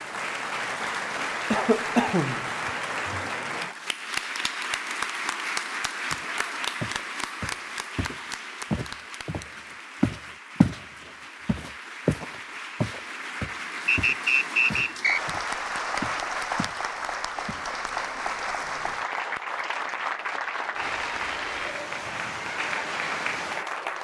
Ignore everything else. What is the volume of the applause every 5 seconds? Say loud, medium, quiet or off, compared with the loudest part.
loud, loud, medium, loud, loud.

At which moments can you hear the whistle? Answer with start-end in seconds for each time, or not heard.
13.8-15.2.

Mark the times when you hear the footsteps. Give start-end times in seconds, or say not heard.
6.1-10.8, 11.4-16.8, 17.4-17.9.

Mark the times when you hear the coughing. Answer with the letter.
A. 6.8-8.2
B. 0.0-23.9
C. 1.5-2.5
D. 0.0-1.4
C.